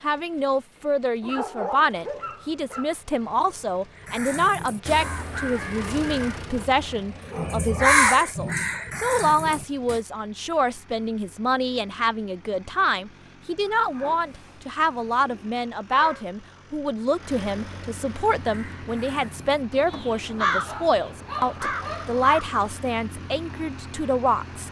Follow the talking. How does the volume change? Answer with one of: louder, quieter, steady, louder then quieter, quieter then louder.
steady.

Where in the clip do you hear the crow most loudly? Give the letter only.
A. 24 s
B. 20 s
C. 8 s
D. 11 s
C.